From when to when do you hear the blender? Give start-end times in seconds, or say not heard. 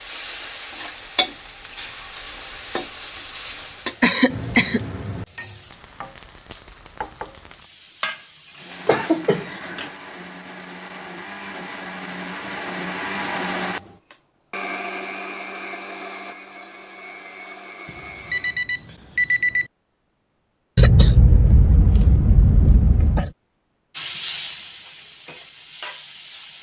8.5-18.6.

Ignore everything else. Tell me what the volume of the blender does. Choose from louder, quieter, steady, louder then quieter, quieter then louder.
louder then quieter.